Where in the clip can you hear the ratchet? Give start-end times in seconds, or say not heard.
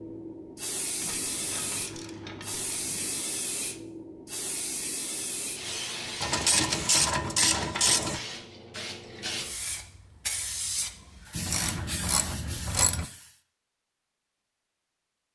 0.9-3.3, 6.2-8.2, 11.3-13.1.